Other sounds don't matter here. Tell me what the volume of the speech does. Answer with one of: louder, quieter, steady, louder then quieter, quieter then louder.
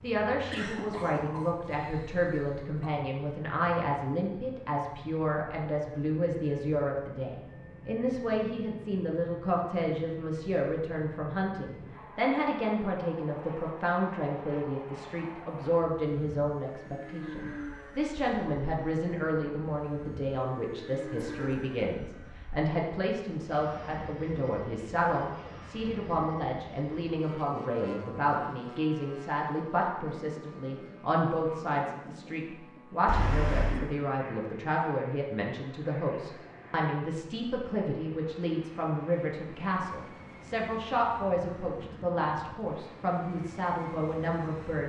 steady.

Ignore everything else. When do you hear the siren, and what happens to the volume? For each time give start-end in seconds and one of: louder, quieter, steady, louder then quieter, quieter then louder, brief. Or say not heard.
not heard.